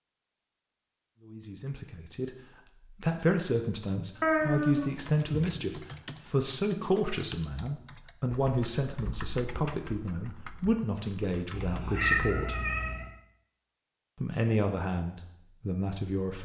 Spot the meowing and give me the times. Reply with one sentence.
The meowing can be heard from 4.2 to 5.7 s and from 11.5 to 13.2 s.